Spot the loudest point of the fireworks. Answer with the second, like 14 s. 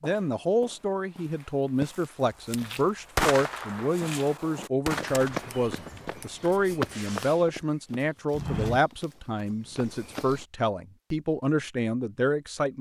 3 s.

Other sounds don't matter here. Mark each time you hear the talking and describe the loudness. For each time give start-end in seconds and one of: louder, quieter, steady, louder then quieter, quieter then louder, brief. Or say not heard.
0.0-12.7 steady.